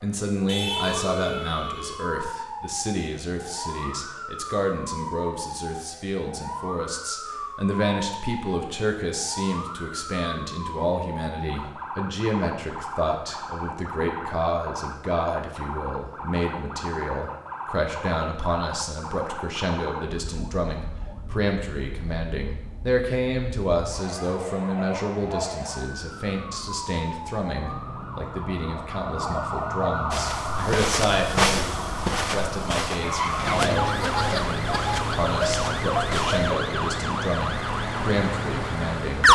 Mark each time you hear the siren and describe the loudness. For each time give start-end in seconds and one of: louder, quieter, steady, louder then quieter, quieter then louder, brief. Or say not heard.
0.0-39.2 louder.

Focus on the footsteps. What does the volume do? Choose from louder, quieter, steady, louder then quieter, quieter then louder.
quieter.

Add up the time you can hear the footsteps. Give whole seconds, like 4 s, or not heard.
6 s.